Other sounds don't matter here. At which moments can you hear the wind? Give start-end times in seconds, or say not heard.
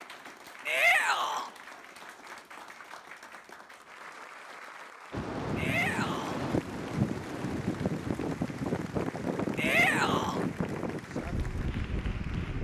5.1-12.5.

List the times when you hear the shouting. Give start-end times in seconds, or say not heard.
0.7-1.5, 5.5-6.4, 9.6-10.4.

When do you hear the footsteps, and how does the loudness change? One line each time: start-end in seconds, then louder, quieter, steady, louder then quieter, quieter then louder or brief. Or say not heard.
not heard.